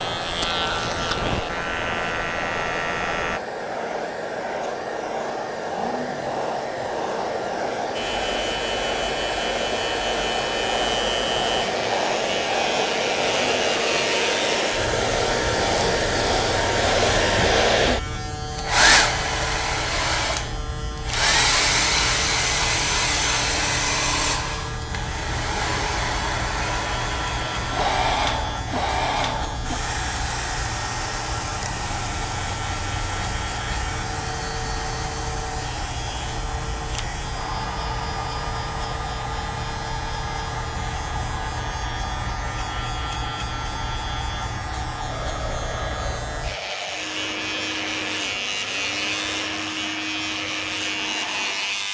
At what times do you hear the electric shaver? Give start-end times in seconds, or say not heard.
0.0-3.4, 7.9-51.8.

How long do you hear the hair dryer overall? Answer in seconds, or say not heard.
52 s.